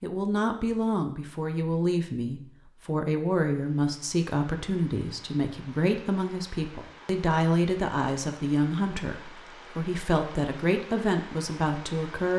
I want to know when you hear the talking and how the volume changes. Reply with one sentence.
The talking can be heard from 0.0 to 12.3 s, at a steady volume.